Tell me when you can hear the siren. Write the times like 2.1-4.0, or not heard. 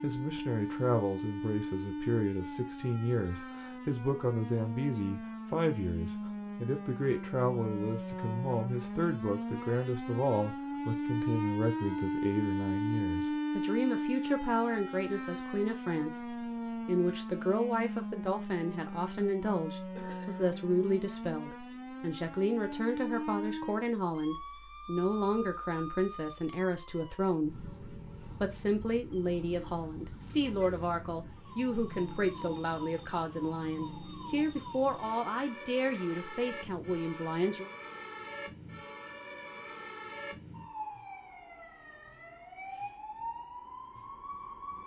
0.0-44.8.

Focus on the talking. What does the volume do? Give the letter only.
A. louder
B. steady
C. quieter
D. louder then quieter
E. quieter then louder
B.